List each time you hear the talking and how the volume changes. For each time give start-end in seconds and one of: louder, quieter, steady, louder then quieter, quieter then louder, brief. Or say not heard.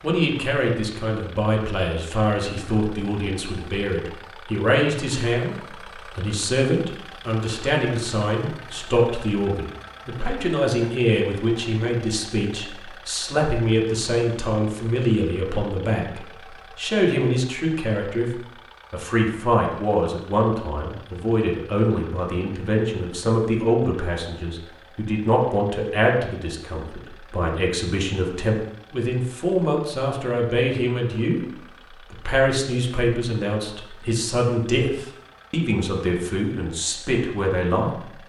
0.0-31.4 steady
32.1-38.0 steady.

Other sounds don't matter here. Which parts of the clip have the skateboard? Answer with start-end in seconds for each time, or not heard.
not heard.